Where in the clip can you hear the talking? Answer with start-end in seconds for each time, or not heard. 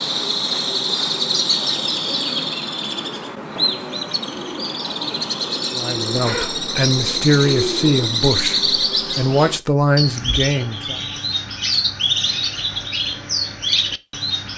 5.7-11.0.